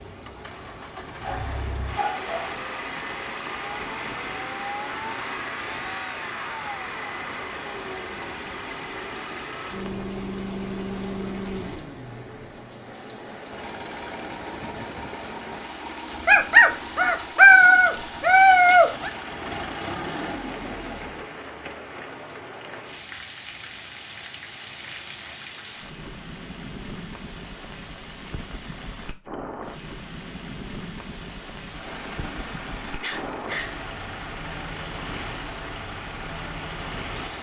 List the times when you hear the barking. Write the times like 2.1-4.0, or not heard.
1.2-2.5, 16.2-19.1, 31.9-33.8.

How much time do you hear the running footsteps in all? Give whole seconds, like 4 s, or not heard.
not heard.